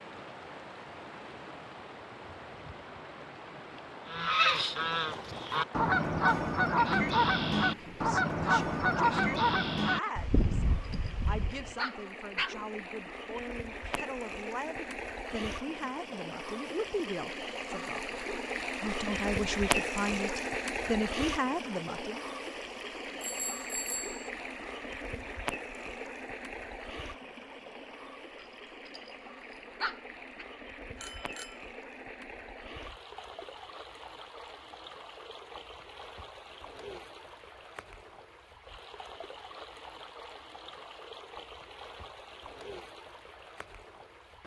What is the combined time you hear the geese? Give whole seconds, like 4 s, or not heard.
8 s.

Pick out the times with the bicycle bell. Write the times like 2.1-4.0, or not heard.
4.8-5.7, 23.2-24.3, 30.9-31.6.